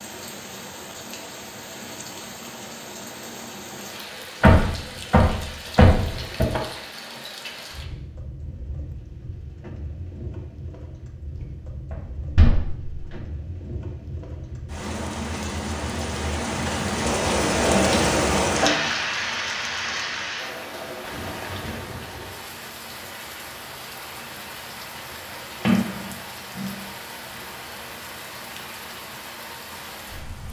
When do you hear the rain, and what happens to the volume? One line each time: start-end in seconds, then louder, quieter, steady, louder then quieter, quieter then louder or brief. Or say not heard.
0.0-30.4 louder then quieter.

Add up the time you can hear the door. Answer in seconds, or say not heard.
5 s.